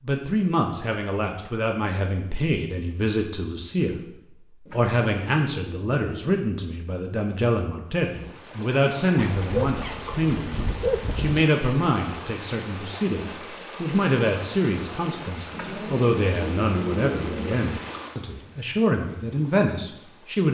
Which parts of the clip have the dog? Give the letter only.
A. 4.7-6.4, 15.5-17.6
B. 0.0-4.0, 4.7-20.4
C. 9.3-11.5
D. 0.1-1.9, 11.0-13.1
C.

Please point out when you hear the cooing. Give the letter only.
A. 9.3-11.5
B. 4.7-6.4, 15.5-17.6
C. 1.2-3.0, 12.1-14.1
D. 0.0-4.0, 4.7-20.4
B.